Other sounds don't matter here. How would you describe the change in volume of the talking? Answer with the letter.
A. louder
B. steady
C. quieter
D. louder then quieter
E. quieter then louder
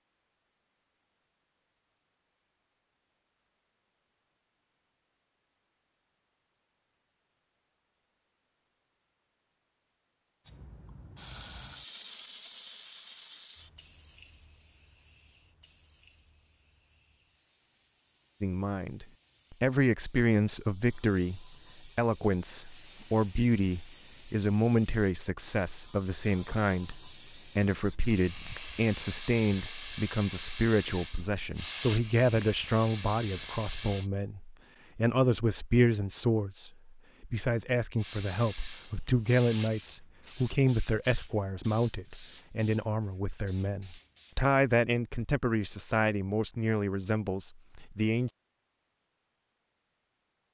B.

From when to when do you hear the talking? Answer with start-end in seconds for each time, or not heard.
18.4-48.3.